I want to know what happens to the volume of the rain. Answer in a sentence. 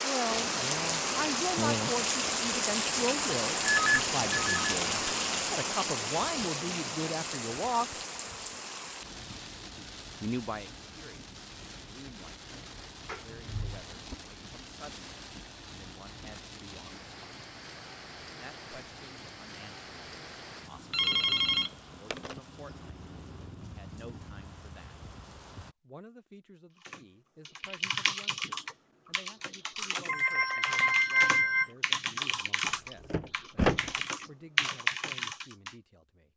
The volume of the rain goes down.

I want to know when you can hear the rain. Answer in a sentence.
The rain can be heard from 0.0 to 25.8 s.